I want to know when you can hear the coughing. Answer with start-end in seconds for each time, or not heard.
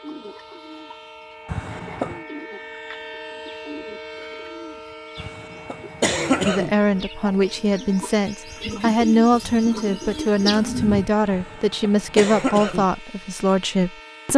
1.4-2.2, 5.2-6.8, 11.3-12.8.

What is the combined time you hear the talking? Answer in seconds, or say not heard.
8 s.